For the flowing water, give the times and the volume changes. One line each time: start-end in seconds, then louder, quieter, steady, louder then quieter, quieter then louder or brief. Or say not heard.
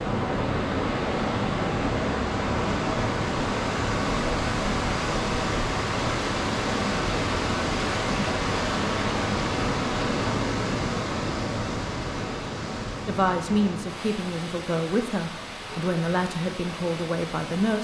0.0-17.7 quieter.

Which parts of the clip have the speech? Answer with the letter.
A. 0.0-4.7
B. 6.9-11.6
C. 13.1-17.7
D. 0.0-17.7
C.